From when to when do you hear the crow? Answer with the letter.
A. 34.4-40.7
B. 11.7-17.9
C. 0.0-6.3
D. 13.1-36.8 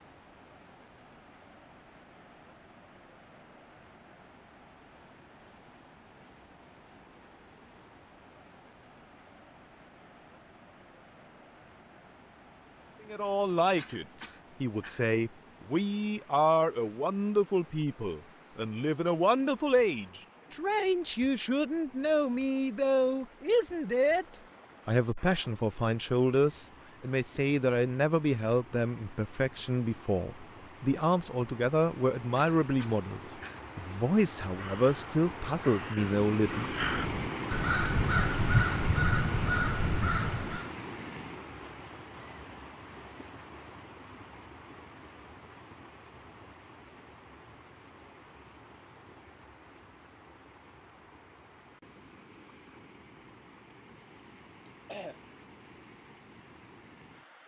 A.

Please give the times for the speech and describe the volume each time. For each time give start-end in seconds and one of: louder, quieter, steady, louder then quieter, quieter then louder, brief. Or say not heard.
13.1-36.8 steady.